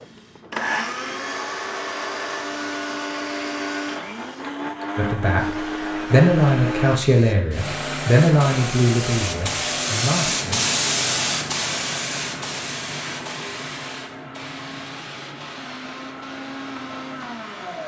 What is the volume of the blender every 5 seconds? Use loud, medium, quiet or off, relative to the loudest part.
loud, loud, medium, medium.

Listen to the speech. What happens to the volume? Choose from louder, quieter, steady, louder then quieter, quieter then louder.
quieter.